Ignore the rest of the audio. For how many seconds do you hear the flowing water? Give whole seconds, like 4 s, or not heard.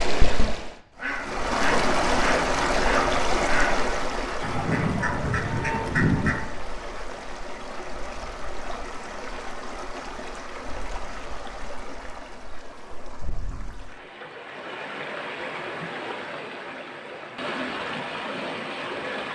19 s.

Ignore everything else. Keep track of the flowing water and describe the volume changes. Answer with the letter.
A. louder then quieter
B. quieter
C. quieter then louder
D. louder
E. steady
C.